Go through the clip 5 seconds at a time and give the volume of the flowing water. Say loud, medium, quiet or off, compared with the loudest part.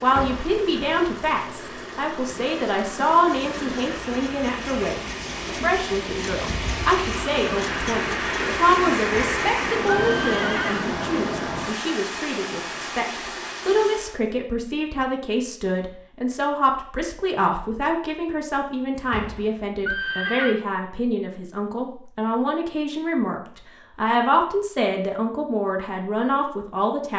medium, loud, loud, off, off, off.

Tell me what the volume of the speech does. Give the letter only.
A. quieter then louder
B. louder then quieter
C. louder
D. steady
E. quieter
D.